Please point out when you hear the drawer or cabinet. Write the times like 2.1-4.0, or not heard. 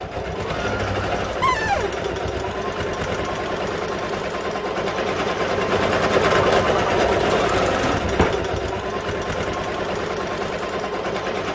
1.4-1.9, 7.6-8.4.